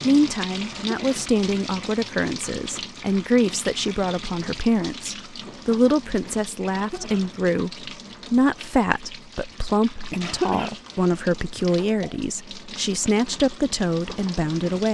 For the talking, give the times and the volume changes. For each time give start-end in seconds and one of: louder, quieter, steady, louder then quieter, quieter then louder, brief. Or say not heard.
0.0-14.9 steady.